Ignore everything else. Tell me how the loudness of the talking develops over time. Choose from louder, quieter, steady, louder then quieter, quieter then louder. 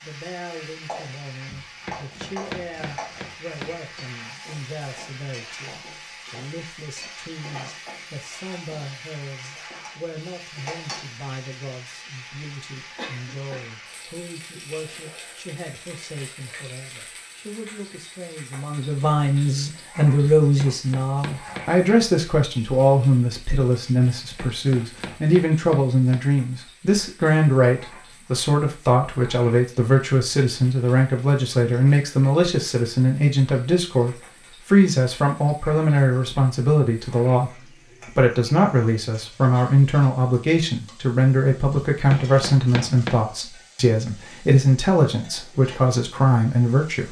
louder.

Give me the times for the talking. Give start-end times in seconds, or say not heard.
0.0-47.0.